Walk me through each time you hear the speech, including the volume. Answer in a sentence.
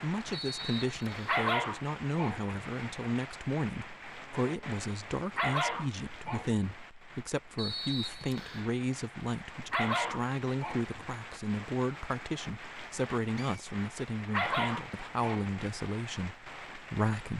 You can hear the speech from 0.0 to 17.3 s, at a steady volume.